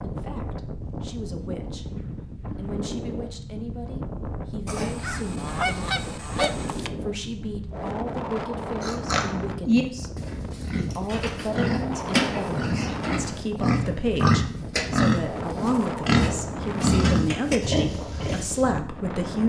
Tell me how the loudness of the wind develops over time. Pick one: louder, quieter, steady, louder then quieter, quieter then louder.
steady.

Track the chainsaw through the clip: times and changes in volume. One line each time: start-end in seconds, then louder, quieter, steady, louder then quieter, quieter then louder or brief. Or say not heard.
not heard.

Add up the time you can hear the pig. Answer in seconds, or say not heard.
10 s.